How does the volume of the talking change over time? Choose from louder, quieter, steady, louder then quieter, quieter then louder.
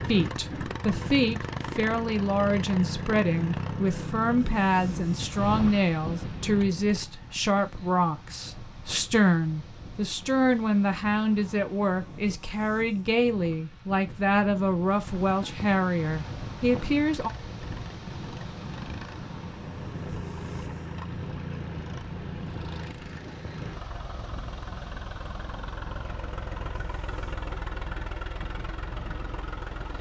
steady.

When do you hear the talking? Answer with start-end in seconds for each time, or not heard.
0.1-17.3.